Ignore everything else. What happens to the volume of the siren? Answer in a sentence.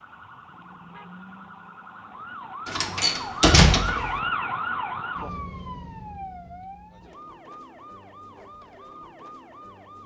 The loudness of the siren goes up, then down.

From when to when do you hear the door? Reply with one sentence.
You can hear the door from 2.6 to 4.2 s.